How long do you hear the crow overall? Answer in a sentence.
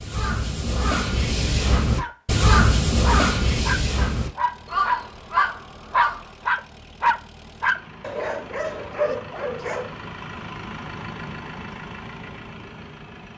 The crow can be heard for 6 seconds in total.